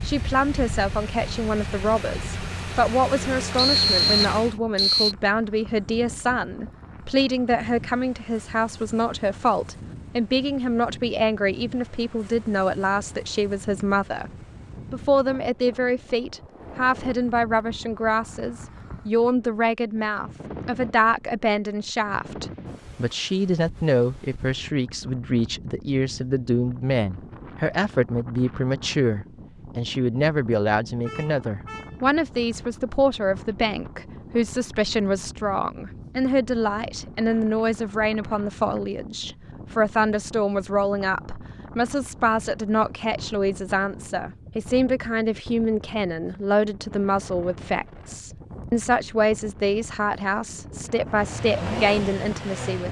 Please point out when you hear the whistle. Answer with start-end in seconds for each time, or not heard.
3.5-5.2.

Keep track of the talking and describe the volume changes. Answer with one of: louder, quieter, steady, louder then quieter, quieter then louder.
steady.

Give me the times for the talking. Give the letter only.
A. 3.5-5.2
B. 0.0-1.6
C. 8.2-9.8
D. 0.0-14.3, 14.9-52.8
D.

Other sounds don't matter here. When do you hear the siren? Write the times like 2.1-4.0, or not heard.
not heard.